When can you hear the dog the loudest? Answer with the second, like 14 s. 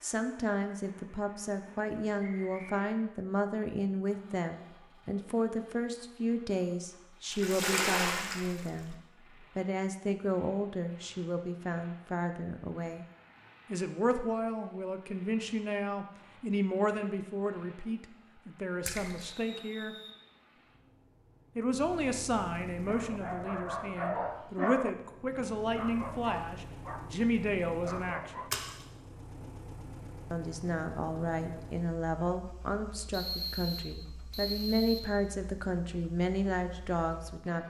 25 s.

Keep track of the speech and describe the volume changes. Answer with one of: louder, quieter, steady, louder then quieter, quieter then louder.
steady.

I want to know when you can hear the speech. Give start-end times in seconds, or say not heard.
0.0-8.9, 9.6-13.1, 13.7-19.9, 21.6-28.4, 30.3-37.6.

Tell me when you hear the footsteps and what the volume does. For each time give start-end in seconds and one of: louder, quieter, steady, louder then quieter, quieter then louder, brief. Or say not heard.
not heard.